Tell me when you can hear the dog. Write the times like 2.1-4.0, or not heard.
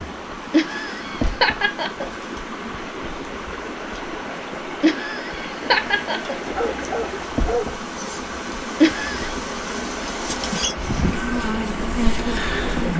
6.5-7.8.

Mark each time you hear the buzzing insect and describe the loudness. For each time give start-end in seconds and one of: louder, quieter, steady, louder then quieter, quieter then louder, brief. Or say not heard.
0.0-12.9 louder.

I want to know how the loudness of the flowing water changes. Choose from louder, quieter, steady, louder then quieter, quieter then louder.
steady.